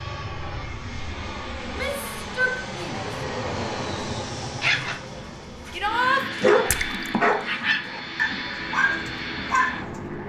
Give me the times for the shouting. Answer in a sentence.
You can hear the shouting from 1.6 to 3.1 s and from 5.7 to 6.2 s.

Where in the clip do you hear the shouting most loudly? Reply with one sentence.
The loudest moment of the shouting is at 6 seconds.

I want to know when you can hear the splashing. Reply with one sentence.
You can hear the splashing from 6.7 to 7.2 s.